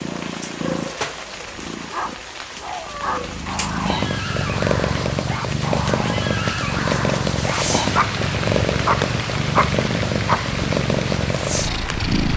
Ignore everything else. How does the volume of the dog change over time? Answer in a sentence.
The loudness of the dog goes up.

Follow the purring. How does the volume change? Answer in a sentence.
The loudness of the purring goes up.